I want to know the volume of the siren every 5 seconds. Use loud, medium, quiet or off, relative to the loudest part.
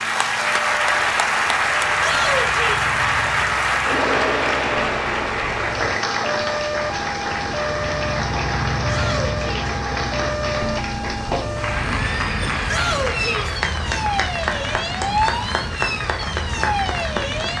medium, loud, loud, loud.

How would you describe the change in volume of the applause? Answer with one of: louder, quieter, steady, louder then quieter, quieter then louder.
quieter.